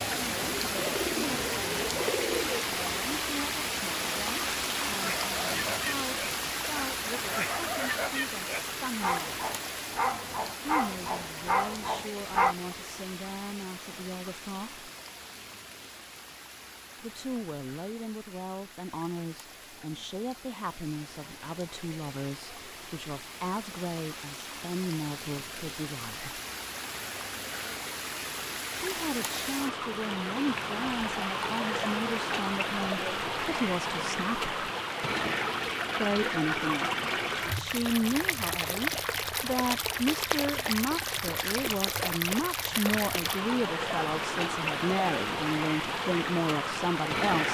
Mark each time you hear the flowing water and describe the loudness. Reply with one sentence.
You can hear the flowing water from 0.0 to 47.4 s, getting quieter then louder.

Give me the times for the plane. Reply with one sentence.
You can't hear the plane here.